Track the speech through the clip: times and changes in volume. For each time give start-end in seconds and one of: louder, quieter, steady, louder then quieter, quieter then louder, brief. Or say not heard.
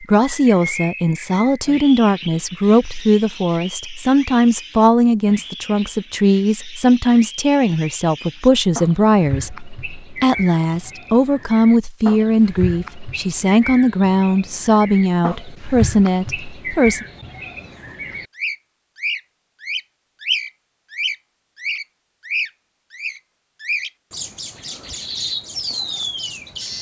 0.0-17.1 steady.